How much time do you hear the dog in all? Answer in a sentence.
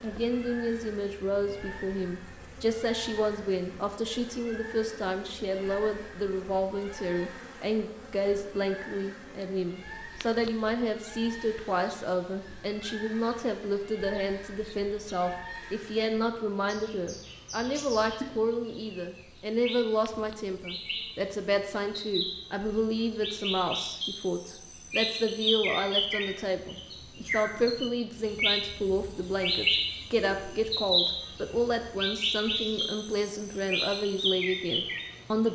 The dog can't be heard in this clip.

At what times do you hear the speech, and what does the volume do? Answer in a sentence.
You can hear the speech from 0.0 to 35.5 s, at a steady volume.